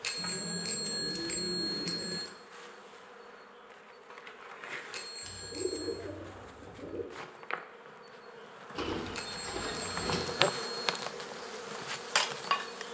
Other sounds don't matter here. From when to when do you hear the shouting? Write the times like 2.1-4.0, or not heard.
not heard.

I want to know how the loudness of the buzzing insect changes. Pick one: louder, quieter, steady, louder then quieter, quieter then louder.
louder.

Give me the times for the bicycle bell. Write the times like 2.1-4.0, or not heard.
0.0-2.3, 4.9-6.0, 9.1-10.8.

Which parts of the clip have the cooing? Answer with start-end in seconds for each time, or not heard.
0.1-2.2, 5.2-7.0, 8.8-10.3.